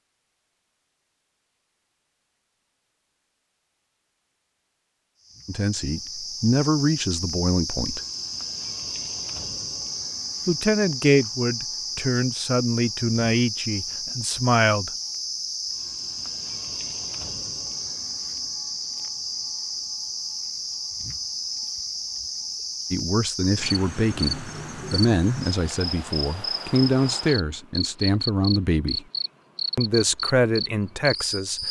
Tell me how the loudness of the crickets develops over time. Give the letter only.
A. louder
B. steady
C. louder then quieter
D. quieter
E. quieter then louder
B.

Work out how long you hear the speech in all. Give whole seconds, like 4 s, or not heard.
15 s.